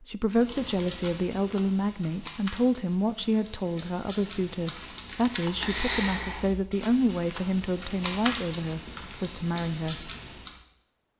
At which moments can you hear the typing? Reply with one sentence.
The typing can be heard from 0.3 to 10.6 s.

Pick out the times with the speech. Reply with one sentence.
The speech can be heard from 0.0 to 10.1 s.